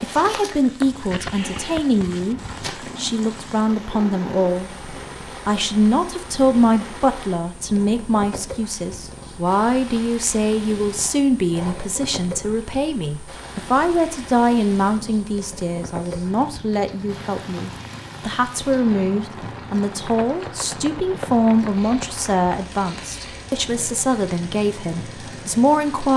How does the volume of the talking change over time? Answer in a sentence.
The volume of the talking stays about the same.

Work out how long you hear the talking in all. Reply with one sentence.
The talking can be heard for 26 seconds in total.